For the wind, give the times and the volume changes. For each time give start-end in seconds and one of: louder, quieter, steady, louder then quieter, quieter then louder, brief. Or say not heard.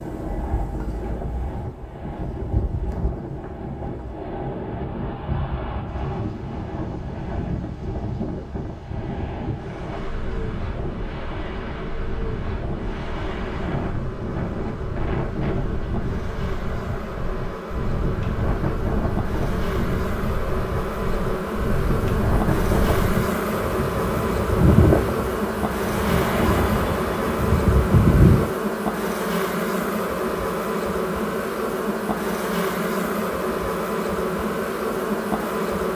0.0-28.5 louder.